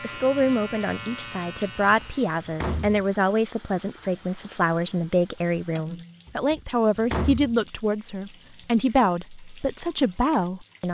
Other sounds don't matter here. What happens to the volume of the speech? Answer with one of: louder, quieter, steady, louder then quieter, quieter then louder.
steady.